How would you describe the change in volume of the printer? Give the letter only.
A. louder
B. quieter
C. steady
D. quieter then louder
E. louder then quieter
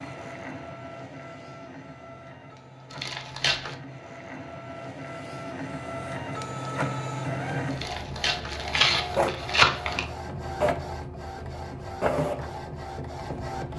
A.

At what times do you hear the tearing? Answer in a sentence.
The tearing can be heard from 2.9 to 3.8 s and from 7.7 to 10.1 s.